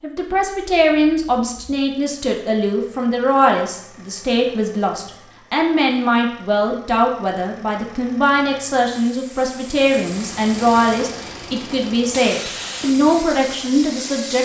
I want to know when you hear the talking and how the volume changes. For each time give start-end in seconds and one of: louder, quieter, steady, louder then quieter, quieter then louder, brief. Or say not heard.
0.0-14.4 steady.